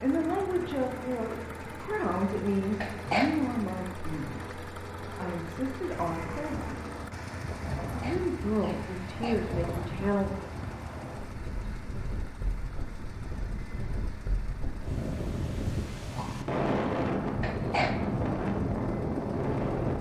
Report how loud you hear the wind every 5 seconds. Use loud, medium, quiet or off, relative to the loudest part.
off, medium, medium, loud.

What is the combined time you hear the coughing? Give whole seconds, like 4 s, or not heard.
3 s.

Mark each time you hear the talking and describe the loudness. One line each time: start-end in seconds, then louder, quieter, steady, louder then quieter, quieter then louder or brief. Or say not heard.
0.0-6.8 quieter then louder
7.9-10.4 brief.